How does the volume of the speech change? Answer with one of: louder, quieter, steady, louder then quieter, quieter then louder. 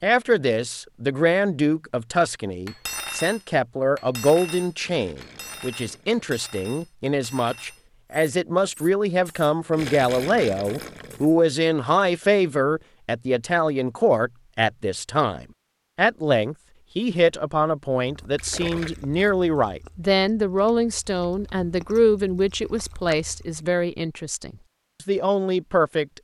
steady.